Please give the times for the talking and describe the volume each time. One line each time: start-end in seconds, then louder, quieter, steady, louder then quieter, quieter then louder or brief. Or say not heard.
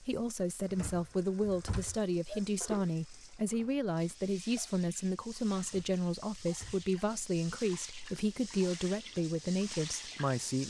0.0-10.6 steady.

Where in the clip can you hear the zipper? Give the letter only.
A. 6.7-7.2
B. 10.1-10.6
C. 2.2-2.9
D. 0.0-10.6
C.